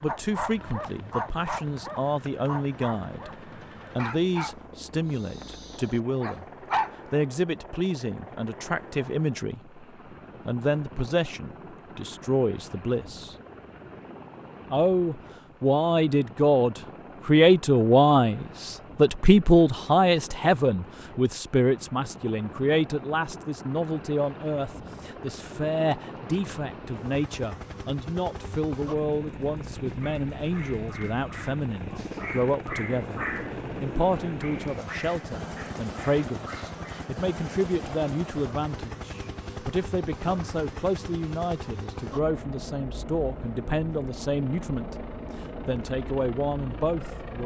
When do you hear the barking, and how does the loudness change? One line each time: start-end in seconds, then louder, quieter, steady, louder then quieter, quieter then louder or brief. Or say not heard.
0.1-7.0 quieter
30.0-37.1 louder then quieter.